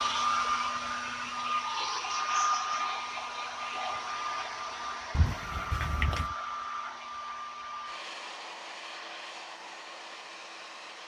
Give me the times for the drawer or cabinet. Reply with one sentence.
You can hear the drawer or cabinet from 5.2 to 6.3 s.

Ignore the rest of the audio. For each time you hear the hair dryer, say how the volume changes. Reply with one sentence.
The hair dryer can be heard from 0.0 to 11.0 s, getting quieter.